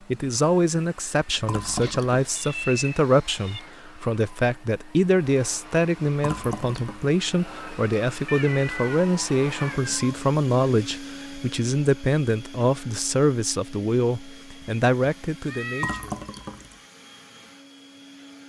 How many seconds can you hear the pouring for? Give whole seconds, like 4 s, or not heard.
3 s.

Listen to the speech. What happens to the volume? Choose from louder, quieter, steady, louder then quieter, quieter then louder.
steady.